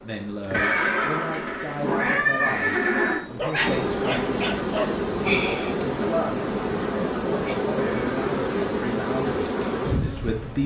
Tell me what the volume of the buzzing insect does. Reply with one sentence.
The volume of the buzzing insect goes up.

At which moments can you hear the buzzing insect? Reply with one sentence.
You can hear the buzzing insect from 0.0 to 10.6 s.